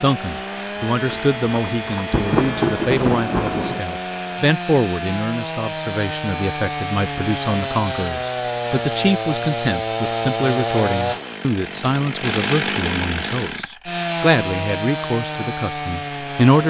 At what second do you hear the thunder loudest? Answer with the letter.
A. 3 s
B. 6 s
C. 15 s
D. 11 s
A.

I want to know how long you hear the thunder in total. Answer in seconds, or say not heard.
3 s.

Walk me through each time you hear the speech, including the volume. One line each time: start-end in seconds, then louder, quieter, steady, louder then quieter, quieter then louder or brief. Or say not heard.
0.0-16.6 steady.